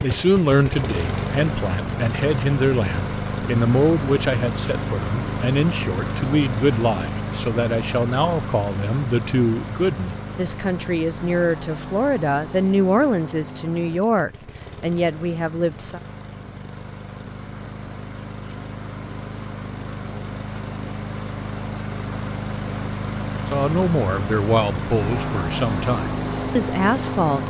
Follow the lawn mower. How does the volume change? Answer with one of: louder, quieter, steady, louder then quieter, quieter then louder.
quieter then louder.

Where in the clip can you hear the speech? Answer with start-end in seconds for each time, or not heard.
0.0-16.0, 23.5-27.4.